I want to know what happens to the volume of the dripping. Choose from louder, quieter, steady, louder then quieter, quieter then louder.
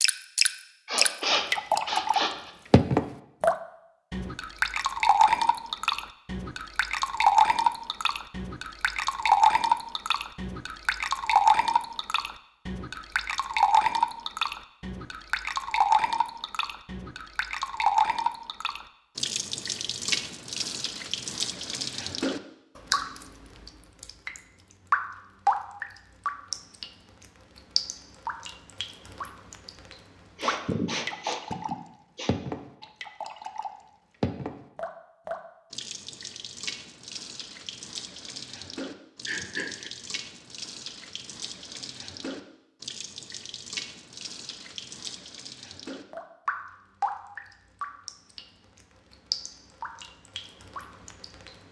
quieter.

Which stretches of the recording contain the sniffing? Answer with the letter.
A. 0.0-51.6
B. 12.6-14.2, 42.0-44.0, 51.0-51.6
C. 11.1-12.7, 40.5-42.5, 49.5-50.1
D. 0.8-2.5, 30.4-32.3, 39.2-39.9
D.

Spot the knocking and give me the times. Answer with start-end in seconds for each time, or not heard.
not heard.